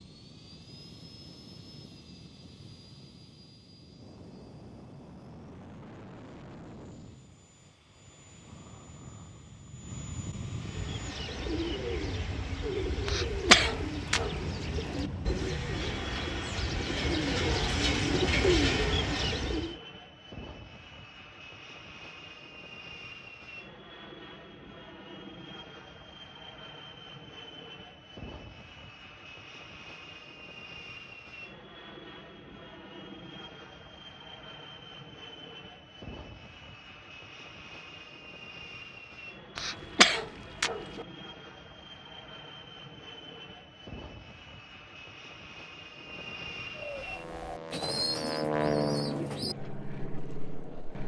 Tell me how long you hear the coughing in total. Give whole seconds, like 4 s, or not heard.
3 s.